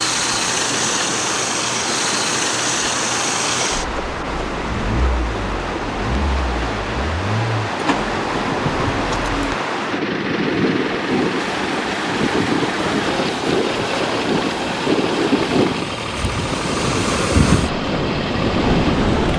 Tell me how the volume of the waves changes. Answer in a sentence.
The loudness of the waves goes up.